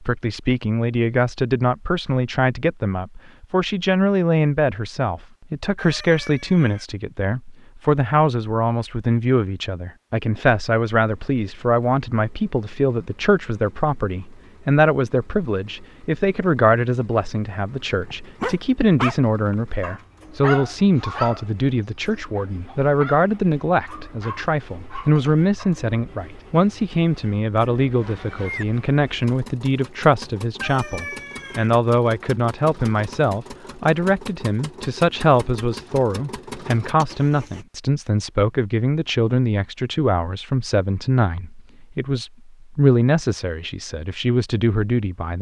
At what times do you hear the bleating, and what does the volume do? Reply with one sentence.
You can't hear the bleating here.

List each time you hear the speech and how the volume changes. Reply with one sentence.
The speech can be heard from 0.0 to 45.3 s, at a steady volume.